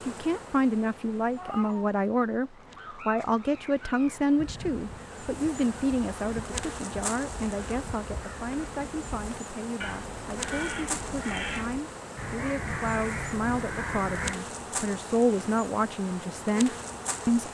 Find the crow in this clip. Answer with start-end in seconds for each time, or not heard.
2.5-14.4.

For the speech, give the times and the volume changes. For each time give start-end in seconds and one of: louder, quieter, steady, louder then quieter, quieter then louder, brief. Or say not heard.
0.1-17.4 quieter then louder.